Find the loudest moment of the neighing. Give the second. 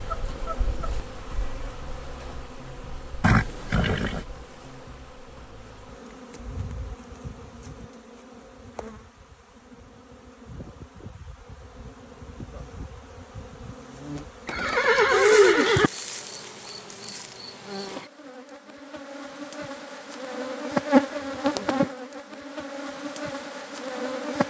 15 s.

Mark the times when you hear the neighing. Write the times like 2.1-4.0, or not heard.
3.2-4.2, 14.4-15.9.